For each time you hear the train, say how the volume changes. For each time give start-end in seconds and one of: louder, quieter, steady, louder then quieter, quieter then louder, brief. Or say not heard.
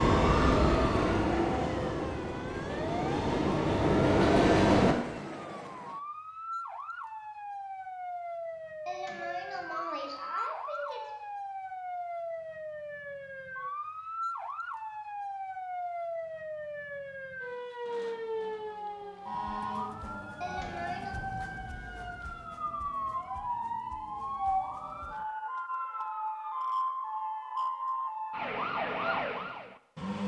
0.0-5.0 quieter then louder.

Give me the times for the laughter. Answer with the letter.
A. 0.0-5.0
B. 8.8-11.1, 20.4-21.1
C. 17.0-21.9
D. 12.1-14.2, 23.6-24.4
B.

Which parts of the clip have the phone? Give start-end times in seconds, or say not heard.
not heard.